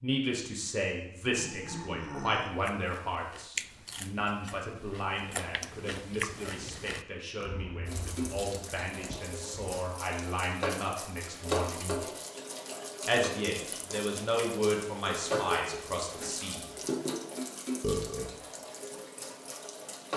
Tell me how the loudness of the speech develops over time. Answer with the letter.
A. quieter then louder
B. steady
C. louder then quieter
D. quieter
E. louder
A.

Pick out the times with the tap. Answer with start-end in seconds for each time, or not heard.
7.8-20.1.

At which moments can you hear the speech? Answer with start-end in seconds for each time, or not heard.
0.0-12.0, 13.1-16.7.